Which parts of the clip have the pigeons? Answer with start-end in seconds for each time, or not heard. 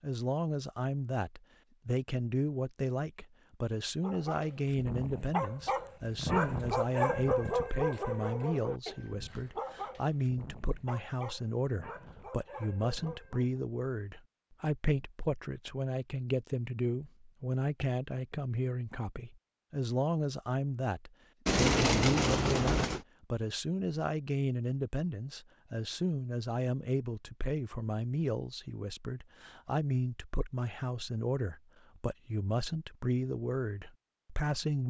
21.4-23.1.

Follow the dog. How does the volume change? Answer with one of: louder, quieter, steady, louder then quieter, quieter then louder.
louder then quieter.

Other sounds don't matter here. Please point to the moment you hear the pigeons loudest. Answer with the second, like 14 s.
22 s.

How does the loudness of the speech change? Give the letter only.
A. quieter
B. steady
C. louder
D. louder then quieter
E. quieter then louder
B.